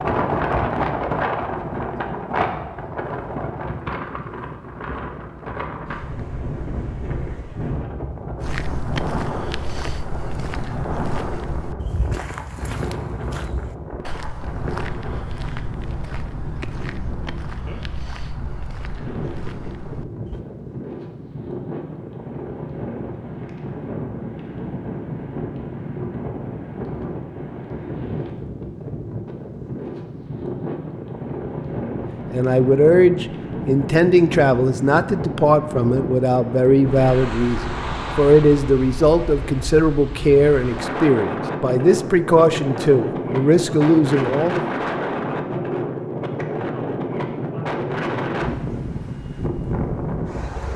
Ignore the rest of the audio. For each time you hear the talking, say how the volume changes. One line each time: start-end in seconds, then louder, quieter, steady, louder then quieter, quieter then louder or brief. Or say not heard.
32.3-44.6 steady.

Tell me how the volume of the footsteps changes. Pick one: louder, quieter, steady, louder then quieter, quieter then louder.
quieter.